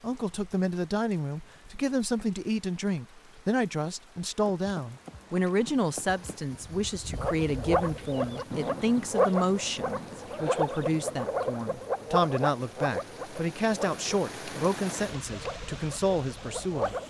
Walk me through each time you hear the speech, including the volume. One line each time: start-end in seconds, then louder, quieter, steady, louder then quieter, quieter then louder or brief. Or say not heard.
0.0-16.9 steady.